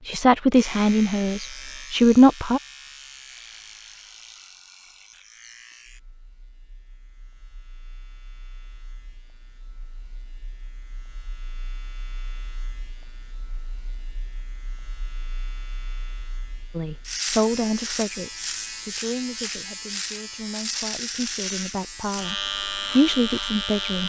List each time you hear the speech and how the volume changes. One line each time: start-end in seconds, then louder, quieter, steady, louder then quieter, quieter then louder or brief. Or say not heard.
0.1-2.6 brief
16.8-24.0 quieter then louder.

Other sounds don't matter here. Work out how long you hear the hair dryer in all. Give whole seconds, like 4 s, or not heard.
not heard.